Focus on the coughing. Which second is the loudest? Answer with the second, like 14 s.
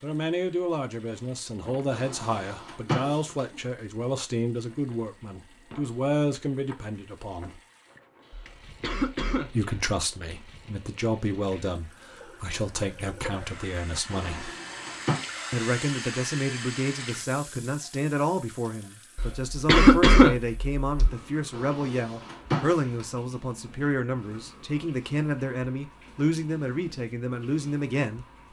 20 s.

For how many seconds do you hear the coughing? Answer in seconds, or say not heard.
3 s.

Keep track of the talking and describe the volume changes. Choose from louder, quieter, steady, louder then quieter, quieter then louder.
steady.